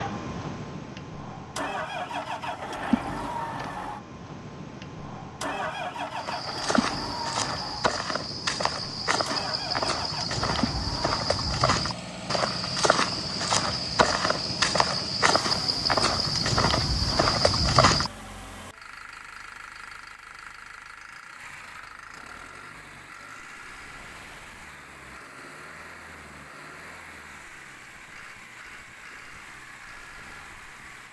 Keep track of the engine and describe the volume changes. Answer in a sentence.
The volume of the engine goes down.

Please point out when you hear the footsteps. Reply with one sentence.
The footsteps can be heard from 6.2 to 18.1 s.